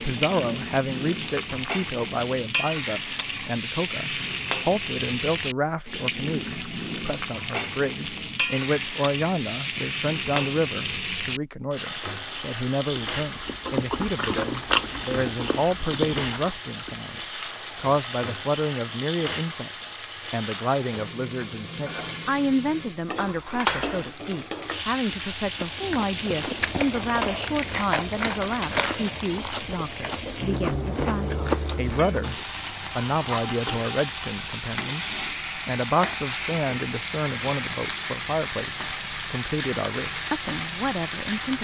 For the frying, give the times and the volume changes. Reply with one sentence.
The frying can be heard from 0.0 to 41.5 s, at a steady volume.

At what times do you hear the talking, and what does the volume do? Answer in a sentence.
The talking can be heard from 0.0 to 41.5 s, at a steady volume.